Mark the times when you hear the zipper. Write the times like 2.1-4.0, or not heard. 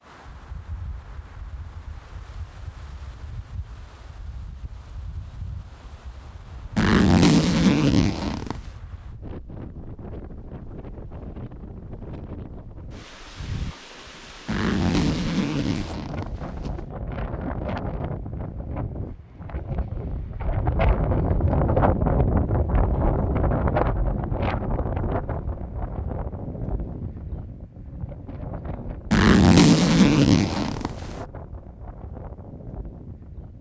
6.8-8.6, 14.4-16.8, 29.1-31.1.